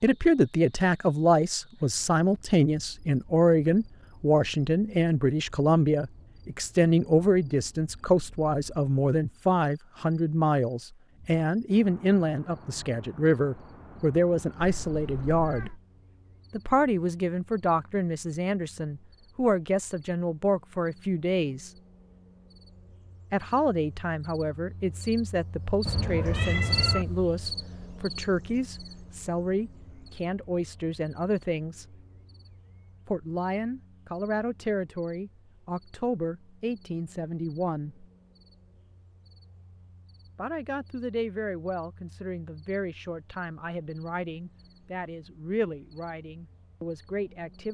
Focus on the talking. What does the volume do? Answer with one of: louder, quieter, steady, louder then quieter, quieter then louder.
quieter.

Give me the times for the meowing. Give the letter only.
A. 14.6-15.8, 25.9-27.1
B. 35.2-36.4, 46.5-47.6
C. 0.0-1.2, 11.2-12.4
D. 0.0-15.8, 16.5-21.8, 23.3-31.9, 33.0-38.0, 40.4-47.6
A.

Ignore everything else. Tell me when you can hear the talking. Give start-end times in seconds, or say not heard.
0.0-15.8, 16.5-21.8, 23.3-31.9, 33.0-38.0, 40.4-47.6.